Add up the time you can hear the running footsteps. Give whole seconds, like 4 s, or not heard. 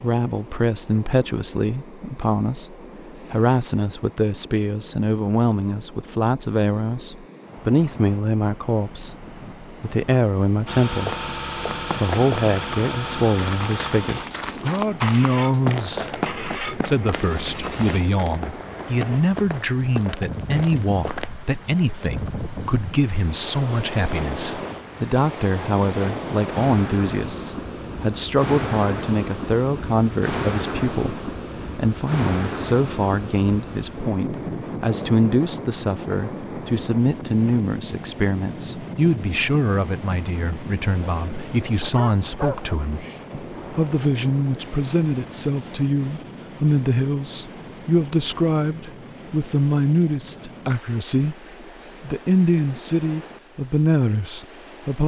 10 s.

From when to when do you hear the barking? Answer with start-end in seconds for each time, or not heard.
42.0-43.8.